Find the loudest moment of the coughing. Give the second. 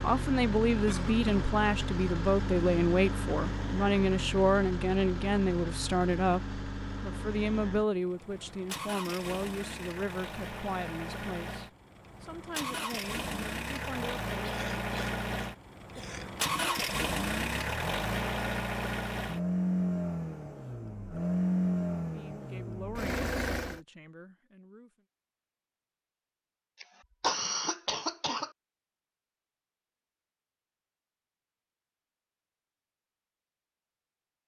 27 s.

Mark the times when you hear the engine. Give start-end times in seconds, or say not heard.
0.0-23.8.